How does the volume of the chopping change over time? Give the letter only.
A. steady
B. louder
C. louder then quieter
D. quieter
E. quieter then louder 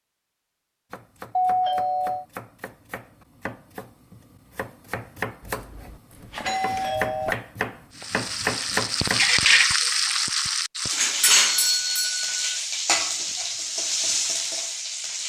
B.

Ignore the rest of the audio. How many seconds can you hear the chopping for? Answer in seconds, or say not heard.
8 s.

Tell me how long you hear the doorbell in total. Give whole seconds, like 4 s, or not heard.
4 s.